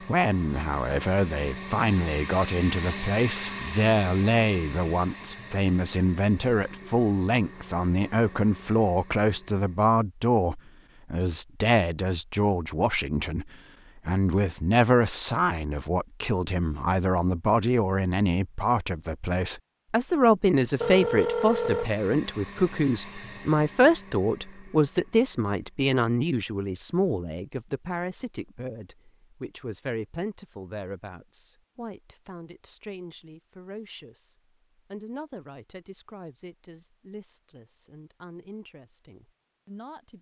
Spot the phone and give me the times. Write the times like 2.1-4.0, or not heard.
20.8-21.9.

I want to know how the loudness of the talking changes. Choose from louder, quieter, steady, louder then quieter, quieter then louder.
quieter.